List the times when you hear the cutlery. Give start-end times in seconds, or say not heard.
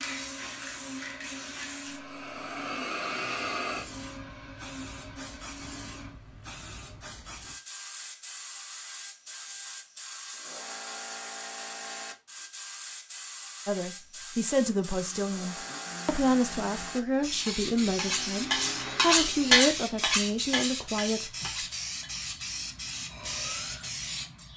17.4-24.5.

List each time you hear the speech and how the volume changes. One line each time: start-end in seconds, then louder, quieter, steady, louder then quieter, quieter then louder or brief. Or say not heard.
13.7-21.3 steady.